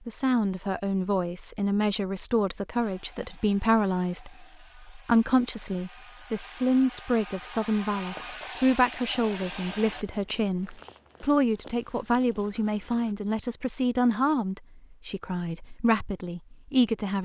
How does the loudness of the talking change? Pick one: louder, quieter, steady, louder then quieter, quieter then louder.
steady.